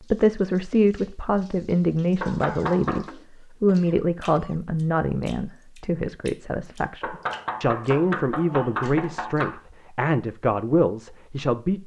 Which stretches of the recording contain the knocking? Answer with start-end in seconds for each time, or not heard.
2.2-3.1, 7.0-9.6.